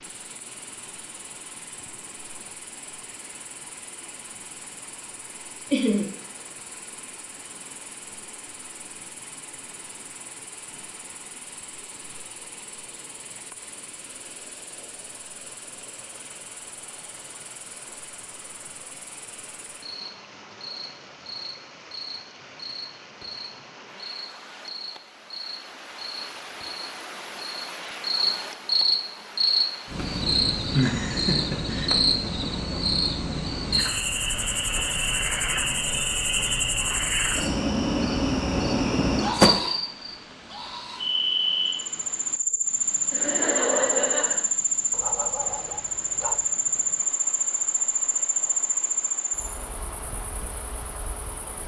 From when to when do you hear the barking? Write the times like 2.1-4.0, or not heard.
44.9-46.5.